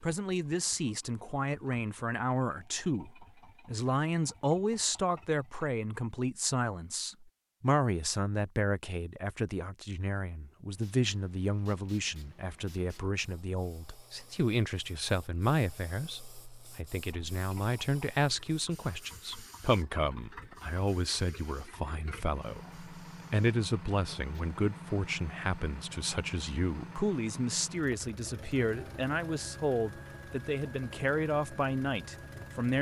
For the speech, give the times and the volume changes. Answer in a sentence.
The speech can be heard from 0.0 to 32.7 s, at a steady volume.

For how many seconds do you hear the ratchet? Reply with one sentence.
The ratchet can't be heard in this clip.